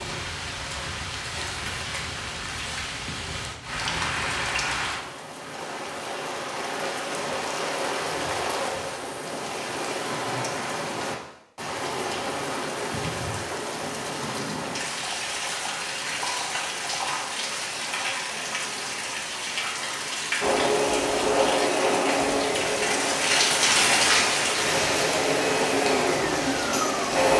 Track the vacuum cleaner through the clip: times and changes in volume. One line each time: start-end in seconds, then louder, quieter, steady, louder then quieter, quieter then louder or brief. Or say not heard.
20.4-27.3 quieter then louder.